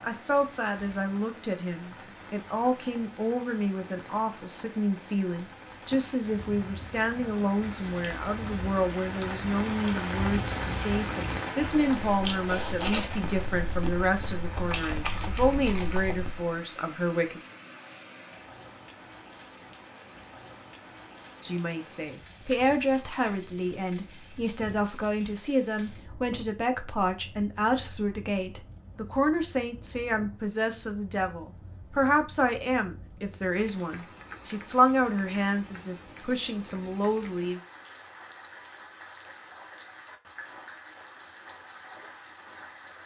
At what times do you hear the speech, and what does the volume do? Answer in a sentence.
The speech can be heard from 0.0 to 17.4 s, at a steady volume; and from 21.4 to 37.6 s, at a steady volume.